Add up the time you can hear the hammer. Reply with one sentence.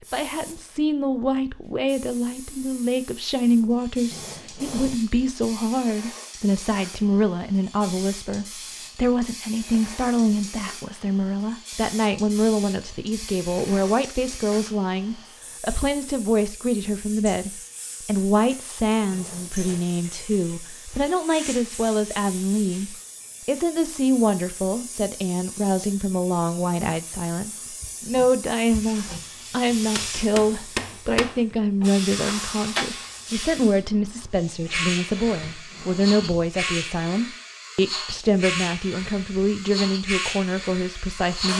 The hammer can be heard for 5 seconds in total.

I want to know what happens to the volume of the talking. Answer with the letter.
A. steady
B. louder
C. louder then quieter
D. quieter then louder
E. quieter
A.